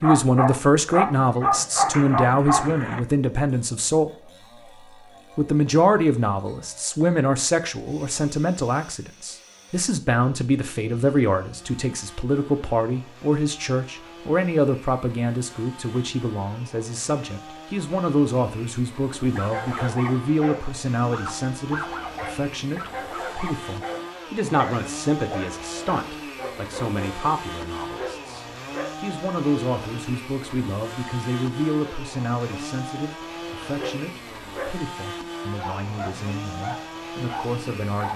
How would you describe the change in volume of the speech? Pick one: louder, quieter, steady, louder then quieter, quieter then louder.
quieter.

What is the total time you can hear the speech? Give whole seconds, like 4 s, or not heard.
37 s.